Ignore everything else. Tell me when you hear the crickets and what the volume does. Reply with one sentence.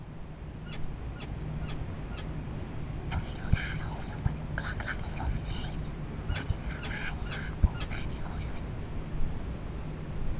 You can hear the crickets from 0.0 to 10.3 s, at a steady volume.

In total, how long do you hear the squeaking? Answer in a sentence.
You can hear the squeaking for 4 seconds altogether.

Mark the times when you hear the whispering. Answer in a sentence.
The whispering can be heard from 3.1 to 8.6 s.